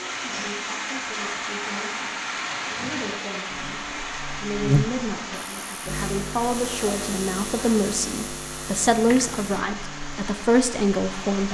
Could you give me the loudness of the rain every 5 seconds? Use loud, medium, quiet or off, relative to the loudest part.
loud, medium, medium.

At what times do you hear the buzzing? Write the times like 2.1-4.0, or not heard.
3.5-11.2.